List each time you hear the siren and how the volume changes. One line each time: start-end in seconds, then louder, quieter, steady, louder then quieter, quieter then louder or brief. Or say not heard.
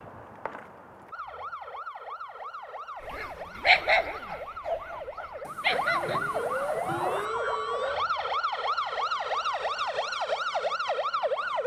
0.0-11.6 louder.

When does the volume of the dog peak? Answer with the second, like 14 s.
4 s.